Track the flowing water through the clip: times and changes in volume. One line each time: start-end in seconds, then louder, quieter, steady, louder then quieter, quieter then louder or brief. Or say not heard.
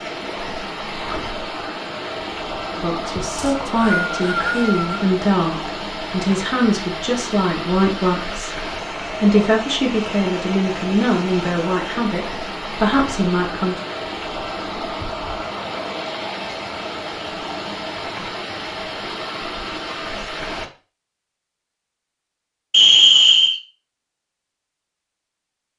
0.0-20.7 steady.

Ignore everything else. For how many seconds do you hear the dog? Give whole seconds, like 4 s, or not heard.
not heard.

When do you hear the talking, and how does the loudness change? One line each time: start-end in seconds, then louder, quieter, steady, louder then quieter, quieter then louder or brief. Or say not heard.
2.8-13.8 steady.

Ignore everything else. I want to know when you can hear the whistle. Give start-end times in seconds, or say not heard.
3.4-5.0, 22.7-23.6.